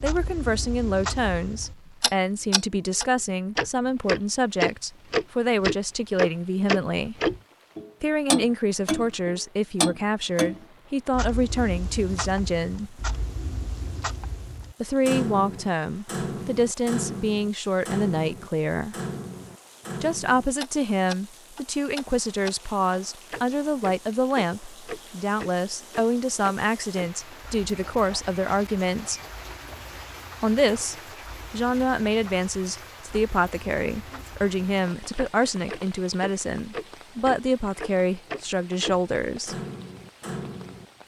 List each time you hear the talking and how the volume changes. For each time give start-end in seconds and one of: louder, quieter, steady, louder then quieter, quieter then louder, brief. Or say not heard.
0.0-7.2 steady
8.0-13.0 steady
14.8-18.9 quieter then louder
20.0-29.2 steady
30.4-39.5 steady.